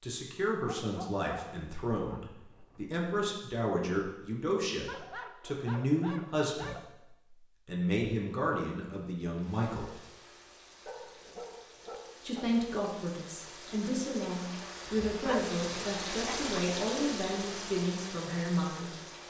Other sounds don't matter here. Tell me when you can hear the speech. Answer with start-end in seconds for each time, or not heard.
0.0-6.8, 7.7-9.9, 12.2-19.0.